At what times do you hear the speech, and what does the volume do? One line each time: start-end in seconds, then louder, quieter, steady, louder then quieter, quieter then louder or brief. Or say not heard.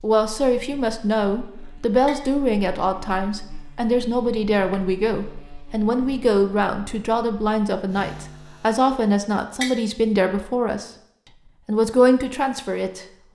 0.0-10.9 steady
11.7-13.1 brief.